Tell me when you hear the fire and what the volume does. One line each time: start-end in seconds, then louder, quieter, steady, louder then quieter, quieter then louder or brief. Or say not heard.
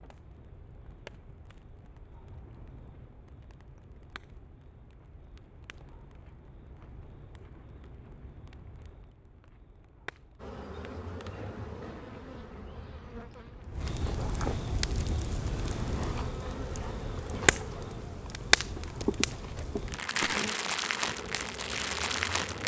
0.0-22.6 louder.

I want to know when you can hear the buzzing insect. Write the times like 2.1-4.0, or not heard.
10.4-22.6.